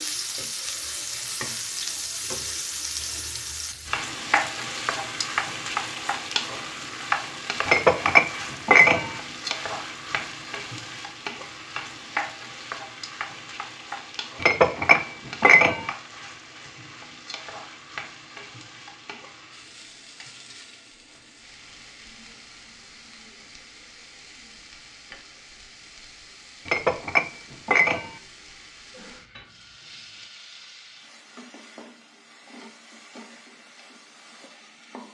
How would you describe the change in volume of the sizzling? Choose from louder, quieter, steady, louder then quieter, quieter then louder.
quieter.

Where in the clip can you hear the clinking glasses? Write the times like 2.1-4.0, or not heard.
7.7-9.2, 14.4-15.9, 26.6-28.1.